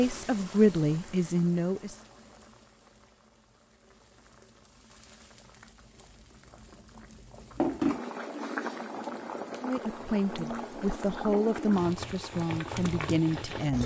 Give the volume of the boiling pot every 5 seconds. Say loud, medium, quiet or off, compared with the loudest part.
quiet, loud, loud.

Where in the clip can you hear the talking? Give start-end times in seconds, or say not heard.
0.0-2.0, 9.6-13.8.